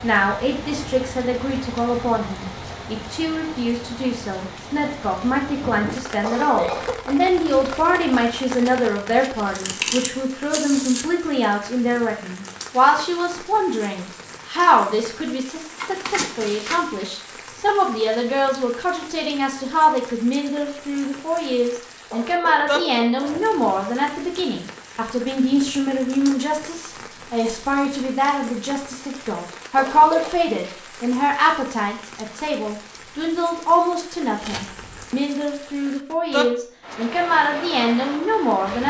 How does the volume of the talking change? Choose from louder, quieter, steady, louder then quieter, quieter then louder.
steady.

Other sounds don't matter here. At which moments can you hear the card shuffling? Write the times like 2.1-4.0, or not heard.
9.6-11.1, 15.8-16.9, 34.4-35.1.